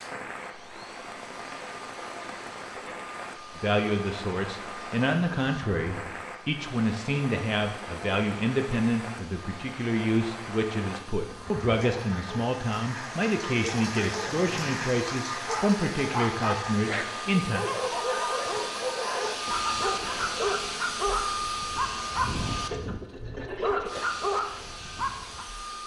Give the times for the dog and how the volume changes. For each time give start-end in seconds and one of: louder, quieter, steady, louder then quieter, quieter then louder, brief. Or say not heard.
14.3-25.4 steady.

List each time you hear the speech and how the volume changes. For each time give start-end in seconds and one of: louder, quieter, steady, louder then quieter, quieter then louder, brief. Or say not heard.
3.5-17.6 steady.